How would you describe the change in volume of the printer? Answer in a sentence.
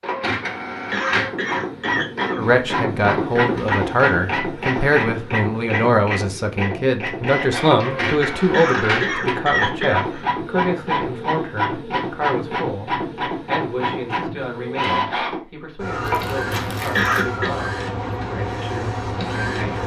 The loudness of the printer stays about the same.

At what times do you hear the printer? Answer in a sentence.
You can hear the printer from 0.0 to 19.8 s.